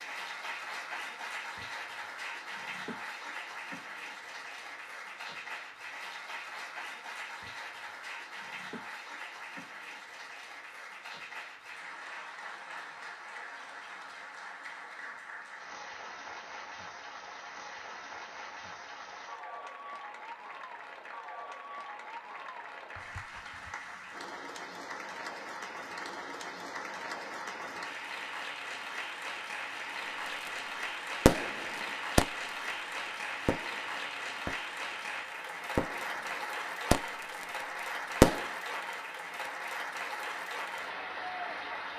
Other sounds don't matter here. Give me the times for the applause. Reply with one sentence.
You can hear the applause from 0.0 to 41.9 s.